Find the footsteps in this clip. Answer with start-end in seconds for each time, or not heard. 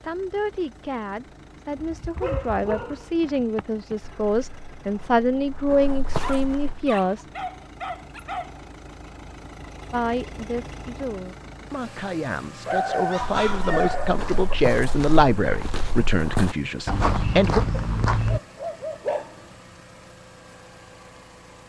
1.8-7.0, 13.2-18.4.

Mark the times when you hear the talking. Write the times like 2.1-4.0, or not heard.
0.0-7.2, 9.9-17.6.